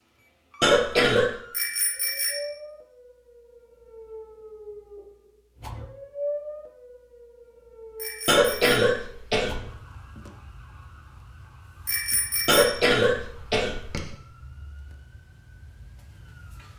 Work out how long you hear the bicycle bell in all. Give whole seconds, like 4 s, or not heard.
3 s.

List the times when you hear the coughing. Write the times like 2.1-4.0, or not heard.
0.6-1.4, 8.2-9.6, 12.4-14.2.